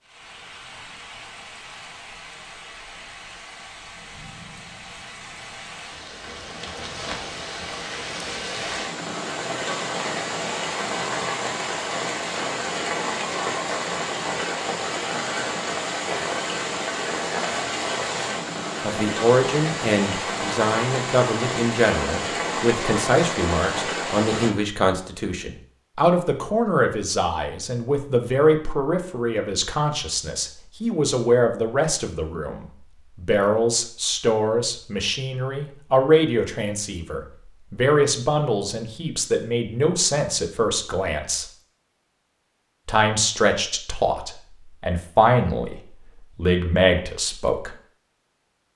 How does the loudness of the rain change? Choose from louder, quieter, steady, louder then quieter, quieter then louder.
louder.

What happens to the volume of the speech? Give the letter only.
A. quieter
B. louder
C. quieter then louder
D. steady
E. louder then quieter
D.